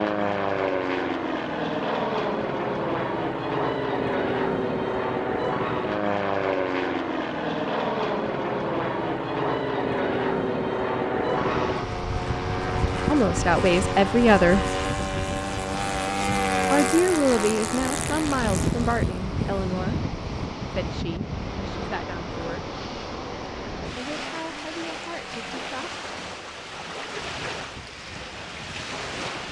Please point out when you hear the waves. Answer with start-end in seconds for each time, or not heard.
11.3-29.4.